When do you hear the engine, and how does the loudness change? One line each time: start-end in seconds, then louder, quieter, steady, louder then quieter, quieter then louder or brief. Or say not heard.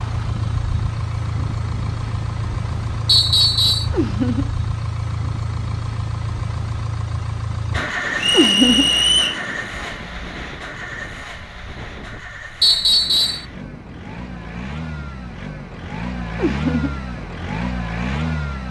0.0-18.6 quieter then louder.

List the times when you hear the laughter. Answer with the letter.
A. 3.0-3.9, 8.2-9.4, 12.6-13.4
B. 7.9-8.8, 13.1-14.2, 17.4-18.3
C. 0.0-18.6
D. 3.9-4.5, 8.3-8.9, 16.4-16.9
D.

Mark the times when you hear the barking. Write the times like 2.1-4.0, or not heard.
not heard.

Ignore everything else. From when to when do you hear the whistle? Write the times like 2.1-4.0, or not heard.
3.0-3.9, 8.2-9.4, 12.6-13.4.